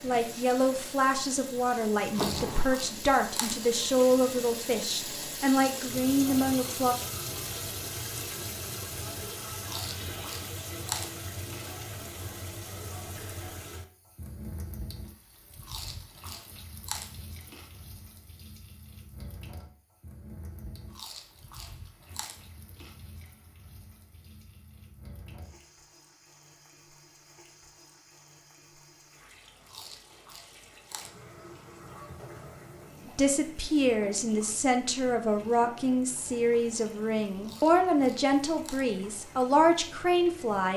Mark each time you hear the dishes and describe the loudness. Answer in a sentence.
You can't hear the dishes here.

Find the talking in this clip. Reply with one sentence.
You can hear the talking from 0.0 to 7.0 s and from 33.0 to 40.7 s.